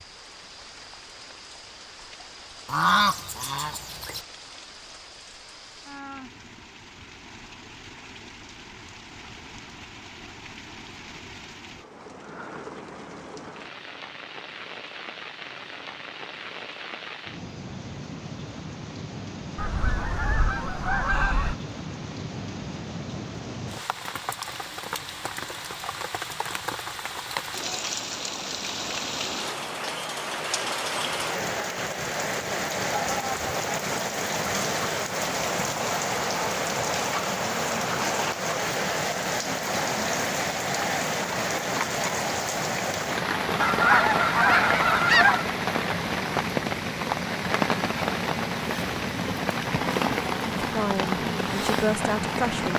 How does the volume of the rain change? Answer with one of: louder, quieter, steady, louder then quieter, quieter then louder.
louder.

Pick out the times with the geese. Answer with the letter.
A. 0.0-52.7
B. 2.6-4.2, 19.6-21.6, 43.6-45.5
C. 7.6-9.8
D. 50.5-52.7
B.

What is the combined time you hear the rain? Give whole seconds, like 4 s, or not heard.
53 s.